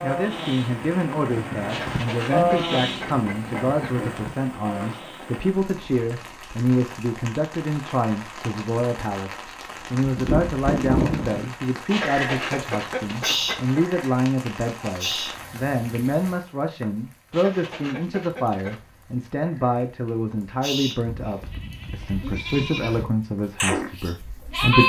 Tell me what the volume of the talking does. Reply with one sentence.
The loudness of the talking stays about the same.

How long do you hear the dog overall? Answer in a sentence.
You can't hear the dog here.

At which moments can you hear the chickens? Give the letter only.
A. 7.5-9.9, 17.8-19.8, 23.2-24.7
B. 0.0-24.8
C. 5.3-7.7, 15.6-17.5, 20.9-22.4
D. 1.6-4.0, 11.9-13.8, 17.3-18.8
D.